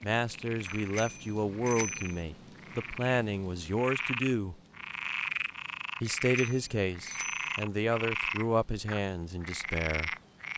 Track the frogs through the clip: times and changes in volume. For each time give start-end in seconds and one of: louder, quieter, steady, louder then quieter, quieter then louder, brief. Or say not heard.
0.0-10.5 louder.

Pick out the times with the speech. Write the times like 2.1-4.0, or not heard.
0.0-4.5, 6.0-10.1.